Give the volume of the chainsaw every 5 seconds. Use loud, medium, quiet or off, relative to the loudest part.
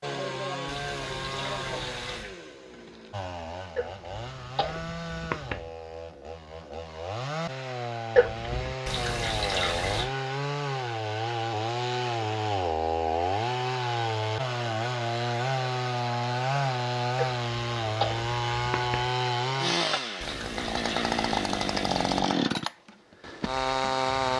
medium, medium, loud, loud, loud.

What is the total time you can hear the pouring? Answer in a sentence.
You can hear the pouring for 5 seconds altogether.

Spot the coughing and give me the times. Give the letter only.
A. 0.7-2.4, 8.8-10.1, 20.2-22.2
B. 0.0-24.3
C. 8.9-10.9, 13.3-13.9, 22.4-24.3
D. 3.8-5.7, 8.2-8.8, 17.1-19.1
D.